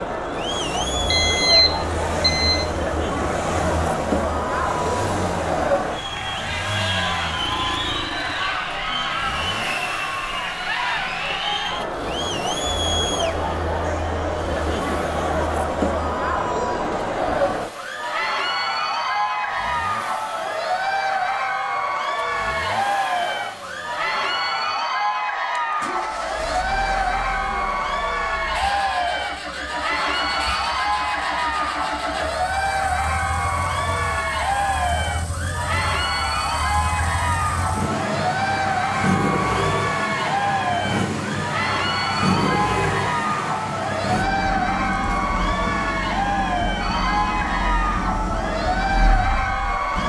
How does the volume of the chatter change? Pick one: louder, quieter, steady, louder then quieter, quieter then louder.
steady.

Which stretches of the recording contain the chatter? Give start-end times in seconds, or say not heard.
0.0-50.0.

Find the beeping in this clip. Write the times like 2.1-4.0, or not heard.
1.1-2.6.